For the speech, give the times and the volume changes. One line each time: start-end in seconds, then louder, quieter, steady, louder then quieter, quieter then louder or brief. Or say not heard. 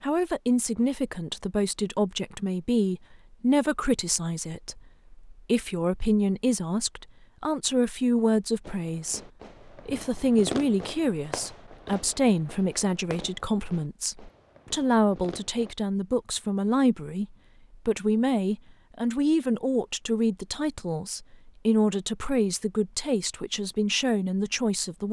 0.0-25.0 steady.